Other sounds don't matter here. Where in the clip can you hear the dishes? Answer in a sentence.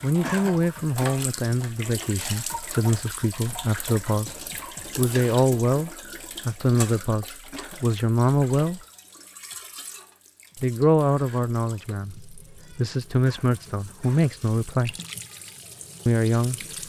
You can't hear the dishes here.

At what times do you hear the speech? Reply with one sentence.
You can hear the speech from 0.0 to 4.3 s, from 5.0 to 8.8 s, from 10.6 to 14.9 s and from 16.1 to 16.8 s.